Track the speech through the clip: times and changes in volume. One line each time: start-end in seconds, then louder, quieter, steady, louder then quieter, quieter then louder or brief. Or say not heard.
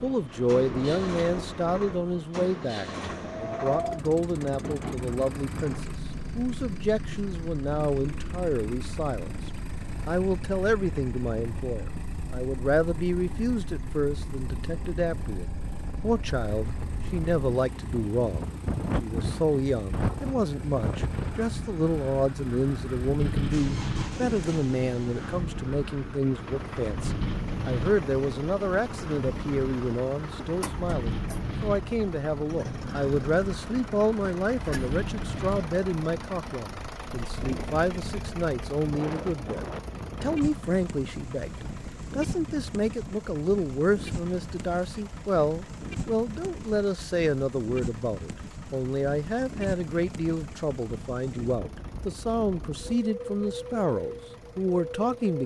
0.0-55.4 steady.